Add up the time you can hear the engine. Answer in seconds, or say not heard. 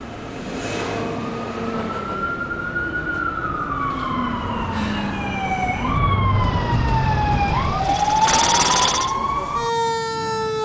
3 s.